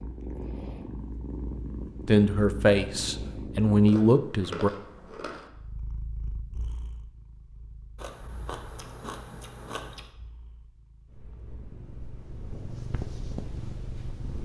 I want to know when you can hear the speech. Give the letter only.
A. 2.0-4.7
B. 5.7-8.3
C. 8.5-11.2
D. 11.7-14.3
A.